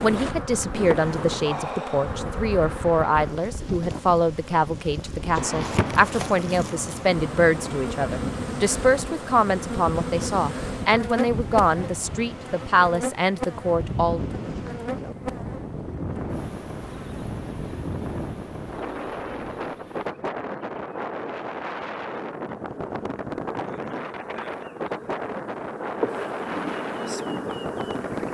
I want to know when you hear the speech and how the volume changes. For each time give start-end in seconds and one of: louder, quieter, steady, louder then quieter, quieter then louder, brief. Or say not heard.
0.0-14.2 steady.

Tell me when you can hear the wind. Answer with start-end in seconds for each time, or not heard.
0.0-28.2.